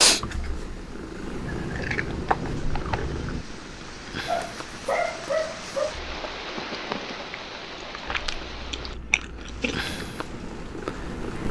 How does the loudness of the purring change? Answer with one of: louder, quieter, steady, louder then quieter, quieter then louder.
quieter then louder.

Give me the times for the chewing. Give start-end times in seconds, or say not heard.
1.4-3.5, 8.1-9.9.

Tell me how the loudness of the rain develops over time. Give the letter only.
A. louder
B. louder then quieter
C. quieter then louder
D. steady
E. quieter
B.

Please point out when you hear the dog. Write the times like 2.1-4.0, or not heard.
4.2-6.0.